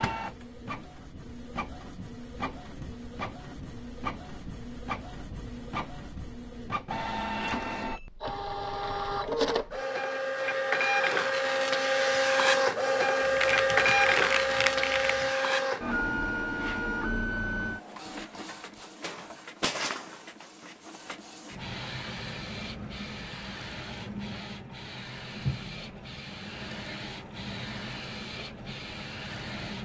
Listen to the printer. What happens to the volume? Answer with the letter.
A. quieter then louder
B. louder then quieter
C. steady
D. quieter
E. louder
B.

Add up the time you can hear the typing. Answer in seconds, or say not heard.
2 s.